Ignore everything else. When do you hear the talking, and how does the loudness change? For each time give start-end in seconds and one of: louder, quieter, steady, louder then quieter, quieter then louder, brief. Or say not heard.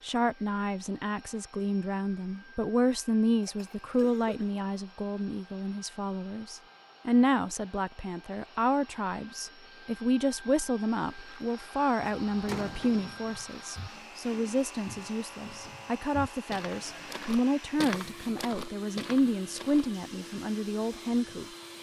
0.0-21.4 steady.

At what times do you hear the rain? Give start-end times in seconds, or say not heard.
not heard.